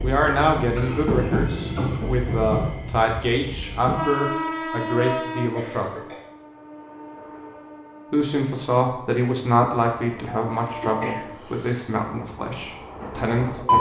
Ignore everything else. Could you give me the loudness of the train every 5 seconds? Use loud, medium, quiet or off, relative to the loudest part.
loud, medium, loud.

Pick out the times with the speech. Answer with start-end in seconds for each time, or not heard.
0.0-6.0, 8.1-13.7.